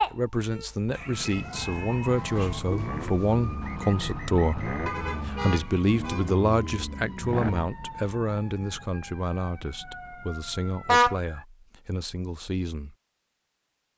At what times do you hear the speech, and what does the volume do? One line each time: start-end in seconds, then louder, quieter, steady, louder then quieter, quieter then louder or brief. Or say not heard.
0.0-12.9 quieter.